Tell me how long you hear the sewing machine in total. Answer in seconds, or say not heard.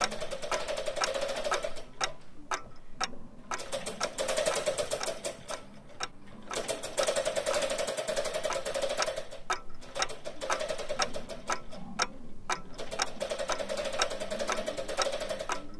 16 s.